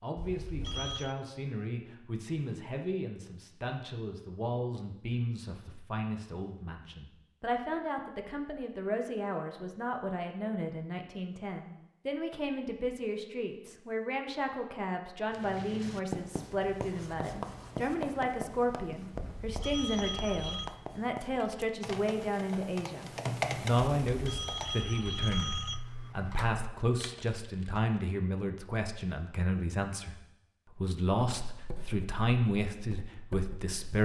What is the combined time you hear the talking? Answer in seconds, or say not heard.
34 s.